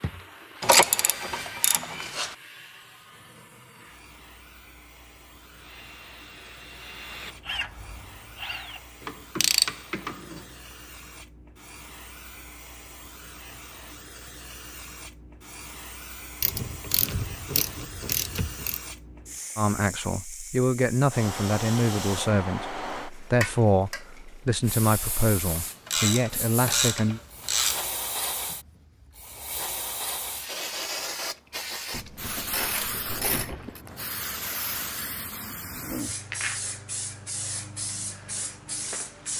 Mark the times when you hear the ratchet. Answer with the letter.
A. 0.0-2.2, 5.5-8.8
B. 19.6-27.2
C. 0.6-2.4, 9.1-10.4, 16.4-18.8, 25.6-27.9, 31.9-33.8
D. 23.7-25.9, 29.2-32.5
C.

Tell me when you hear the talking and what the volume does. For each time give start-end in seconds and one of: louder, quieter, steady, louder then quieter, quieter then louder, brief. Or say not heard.
19.6-27.2 steady.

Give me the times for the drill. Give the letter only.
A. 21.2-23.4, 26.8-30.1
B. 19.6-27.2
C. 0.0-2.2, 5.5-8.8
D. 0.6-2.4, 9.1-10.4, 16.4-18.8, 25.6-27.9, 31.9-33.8
C.